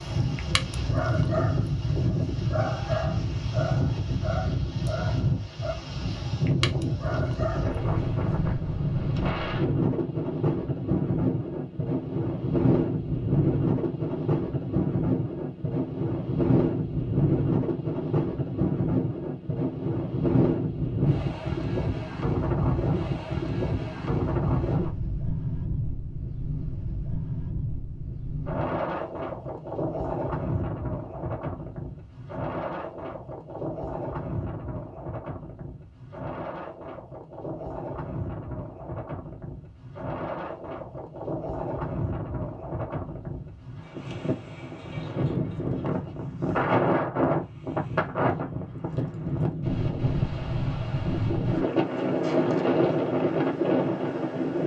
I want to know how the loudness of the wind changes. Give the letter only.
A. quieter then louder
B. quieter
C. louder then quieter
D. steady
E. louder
A.